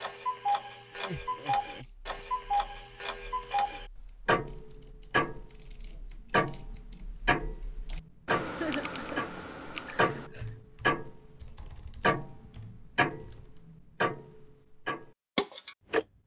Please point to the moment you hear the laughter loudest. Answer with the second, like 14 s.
9 s.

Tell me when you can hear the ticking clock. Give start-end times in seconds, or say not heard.
0.0-16.1.